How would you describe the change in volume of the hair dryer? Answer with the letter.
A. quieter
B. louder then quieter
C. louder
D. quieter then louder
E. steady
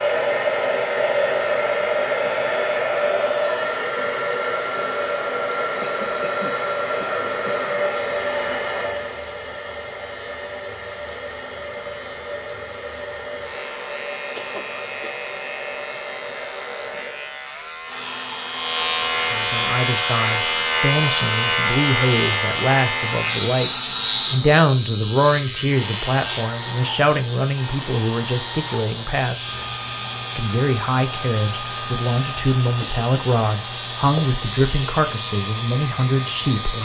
A.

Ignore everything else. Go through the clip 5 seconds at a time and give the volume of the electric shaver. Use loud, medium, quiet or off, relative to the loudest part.
quiet, quiet, quiet, medium, loud, loud, loud, loud.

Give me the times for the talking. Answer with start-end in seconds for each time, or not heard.
19.3-29.4, 30.4-36.8.